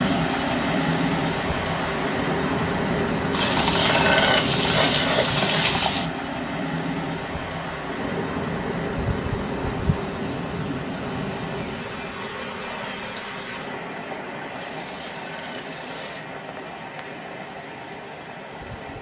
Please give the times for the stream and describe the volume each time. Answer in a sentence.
The stream can be heard from 0.0 to 18.9 s, getting quieter.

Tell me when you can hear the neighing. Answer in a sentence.
The neighing can be heard from 3.3 to 6.0 s and from 14.6 to 16.3 s.